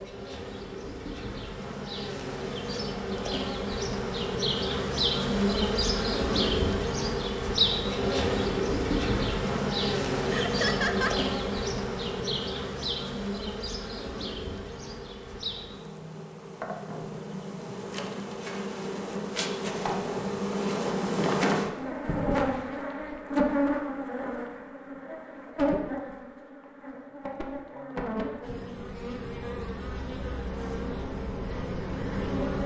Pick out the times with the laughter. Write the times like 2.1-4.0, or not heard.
10.3-11.2.